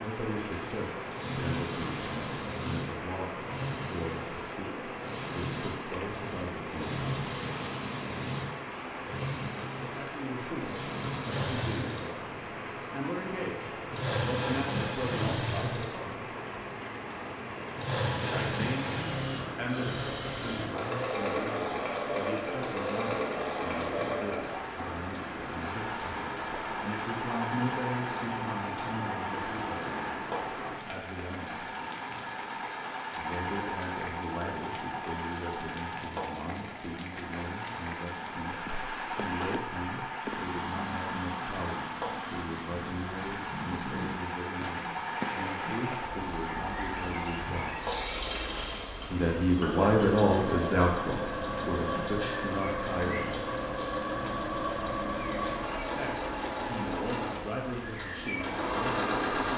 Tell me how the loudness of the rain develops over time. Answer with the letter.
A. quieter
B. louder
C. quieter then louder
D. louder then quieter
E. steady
E.